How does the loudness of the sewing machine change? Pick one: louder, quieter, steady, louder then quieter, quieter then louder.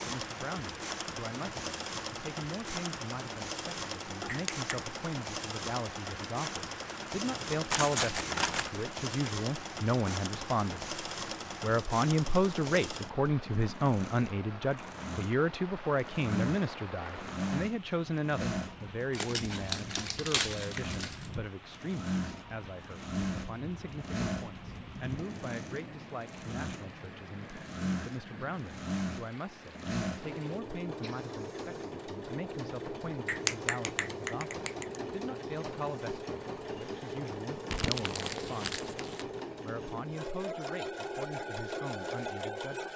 steady.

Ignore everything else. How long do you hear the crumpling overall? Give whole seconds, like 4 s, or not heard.
5 s.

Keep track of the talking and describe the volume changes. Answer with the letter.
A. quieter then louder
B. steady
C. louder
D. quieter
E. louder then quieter
E.